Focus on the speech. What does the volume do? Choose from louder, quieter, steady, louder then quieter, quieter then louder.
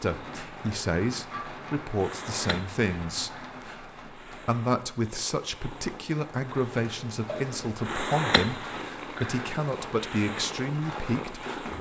steady.